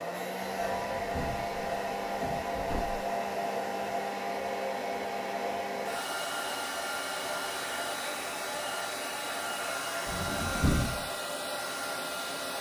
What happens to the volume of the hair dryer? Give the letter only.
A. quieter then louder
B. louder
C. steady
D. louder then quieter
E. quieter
C.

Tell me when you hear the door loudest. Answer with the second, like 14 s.
11 s.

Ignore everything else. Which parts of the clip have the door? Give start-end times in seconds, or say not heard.
0.6-3.0, 10.1-11.1.